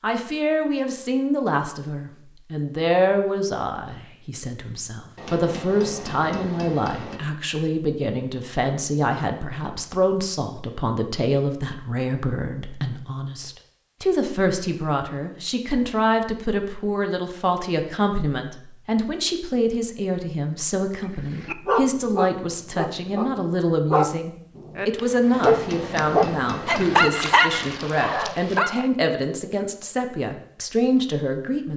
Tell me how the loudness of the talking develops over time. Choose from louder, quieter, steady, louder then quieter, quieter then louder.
steady.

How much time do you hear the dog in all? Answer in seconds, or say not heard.
8 s.